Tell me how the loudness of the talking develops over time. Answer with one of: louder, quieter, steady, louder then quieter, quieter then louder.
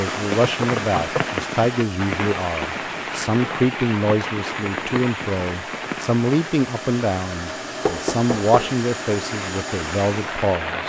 steady.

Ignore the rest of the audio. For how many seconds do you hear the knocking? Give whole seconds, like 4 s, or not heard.
2 s.